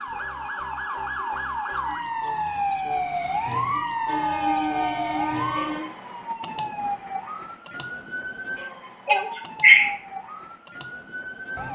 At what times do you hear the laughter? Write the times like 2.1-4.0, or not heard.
9.1-9.9.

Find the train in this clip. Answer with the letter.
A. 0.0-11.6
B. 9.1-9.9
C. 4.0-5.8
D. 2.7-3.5
C.